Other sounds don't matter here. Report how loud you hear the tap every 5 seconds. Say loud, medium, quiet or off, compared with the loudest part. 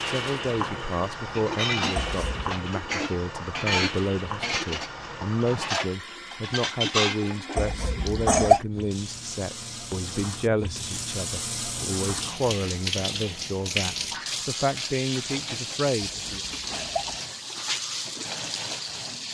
loud, medium, loud, loud.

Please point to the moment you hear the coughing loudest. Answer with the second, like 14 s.
8 s.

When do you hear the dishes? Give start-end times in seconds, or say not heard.
1.4-7.3.